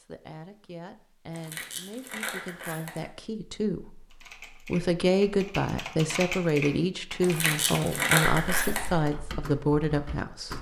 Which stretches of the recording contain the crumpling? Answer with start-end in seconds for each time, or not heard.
1.3-3.0, 7.2-8.9.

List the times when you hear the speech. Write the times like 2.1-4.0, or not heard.
0.0-4.0, 4.7-10.5.